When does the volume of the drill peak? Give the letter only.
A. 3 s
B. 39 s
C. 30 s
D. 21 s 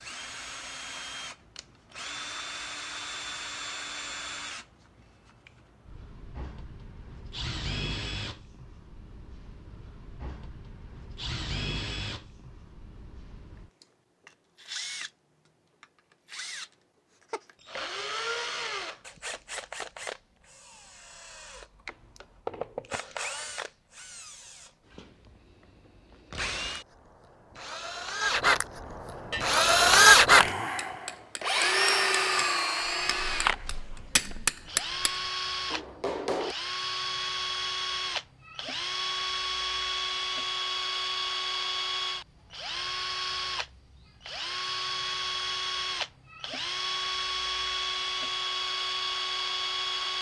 C.